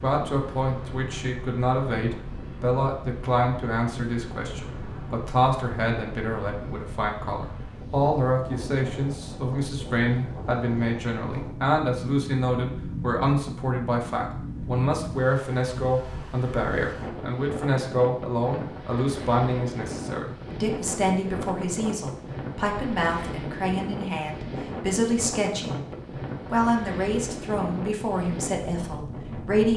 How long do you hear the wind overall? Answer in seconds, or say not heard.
30 s.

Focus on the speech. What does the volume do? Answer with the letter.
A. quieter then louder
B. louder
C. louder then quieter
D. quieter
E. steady
E.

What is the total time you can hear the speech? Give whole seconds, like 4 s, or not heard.
29 s.